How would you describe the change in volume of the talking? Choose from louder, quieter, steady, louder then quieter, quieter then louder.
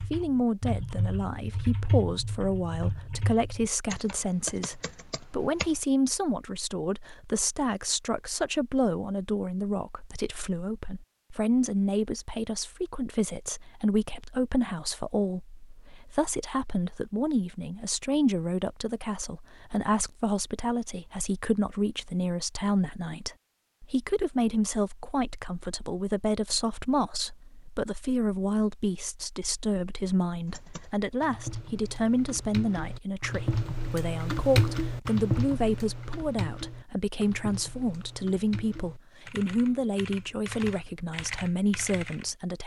steady.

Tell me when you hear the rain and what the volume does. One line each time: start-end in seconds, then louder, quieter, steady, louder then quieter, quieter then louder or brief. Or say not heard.
not heard.